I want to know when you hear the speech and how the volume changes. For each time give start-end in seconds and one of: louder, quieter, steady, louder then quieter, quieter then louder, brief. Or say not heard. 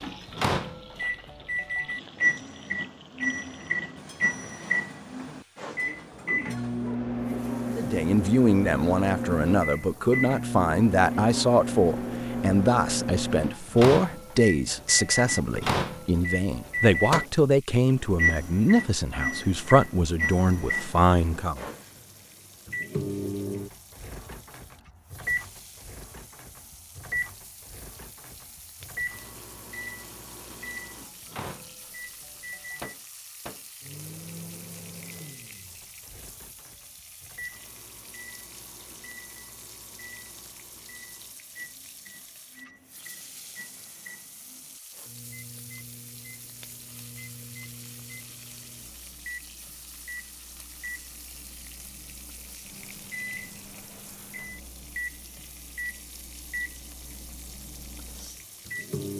7.7-21.6 steady.